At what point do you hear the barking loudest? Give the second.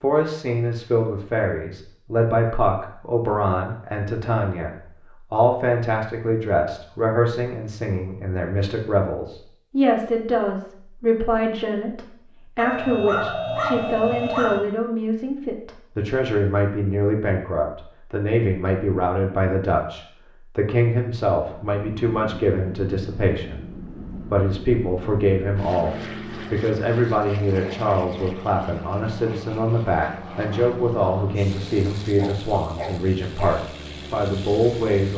14 s.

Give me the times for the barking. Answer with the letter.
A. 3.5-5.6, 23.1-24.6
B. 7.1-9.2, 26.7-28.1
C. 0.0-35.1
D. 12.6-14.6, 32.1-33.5
D.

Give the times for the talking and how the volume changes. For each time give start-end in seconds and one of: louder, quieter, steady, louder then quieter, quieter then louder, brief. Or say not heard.
0.0-35.1 steady.